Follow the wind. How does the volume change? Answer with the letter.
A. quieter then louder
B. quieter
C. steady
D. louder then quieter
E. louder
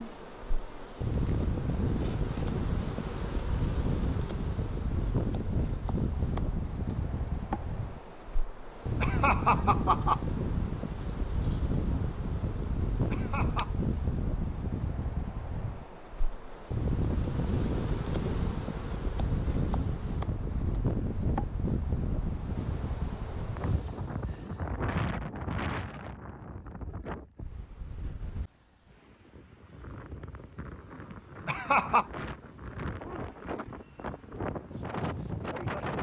B.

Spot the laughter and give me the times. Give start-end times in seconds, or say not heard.
9.0-10.2, 13.1-13.8, 31.4-32.0.